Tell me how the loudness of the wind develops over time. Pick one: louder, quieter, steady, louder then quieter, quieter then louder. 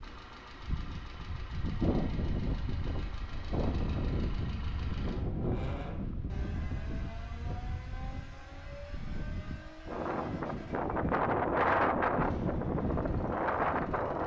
quieter then louder.